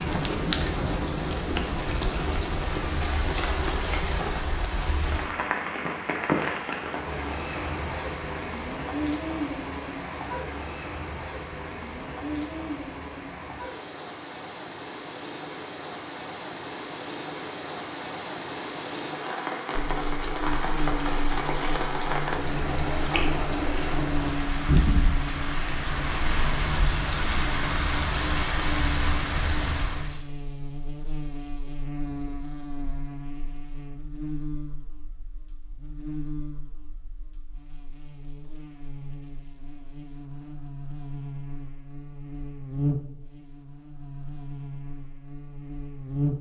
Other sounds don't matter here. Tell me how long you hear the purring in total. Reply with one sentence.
You can't hear the purring here.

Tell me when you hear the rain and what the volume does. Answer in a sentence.
The rain can be heard from 0.0 to 30.2 s, getting quieter then louder.